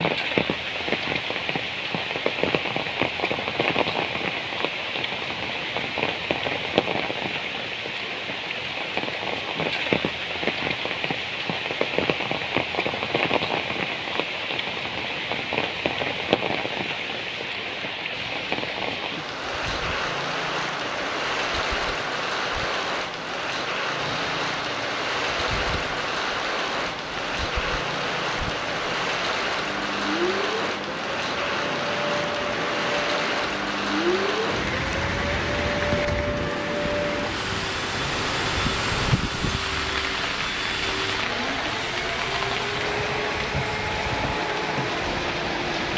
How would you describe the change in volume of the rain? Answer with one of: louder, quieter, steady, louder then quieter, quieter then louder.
steady.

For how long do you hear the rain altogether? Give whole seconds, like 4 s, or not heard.
46 s.